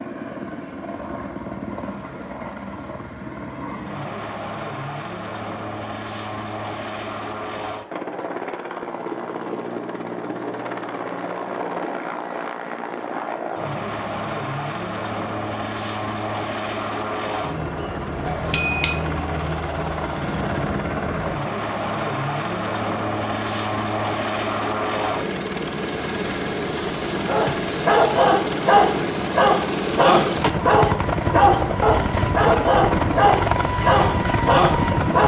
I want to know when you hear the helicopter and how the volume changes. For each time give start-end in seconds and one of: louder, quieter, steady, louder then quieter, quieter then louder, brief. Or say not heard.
0.0-35.2 louder.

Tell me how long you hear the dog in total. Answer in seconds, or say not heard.
8 s.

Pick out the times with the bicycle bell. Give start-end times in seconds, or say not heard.
18.2-19.1.